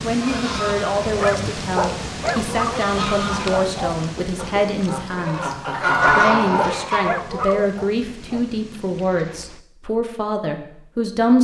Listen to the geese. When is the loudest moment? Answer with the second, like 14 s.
6 s.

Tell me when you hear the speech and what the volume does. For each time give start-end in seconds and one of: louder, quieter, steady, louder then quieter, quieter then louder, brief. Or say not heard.
0.0-11.3 steady.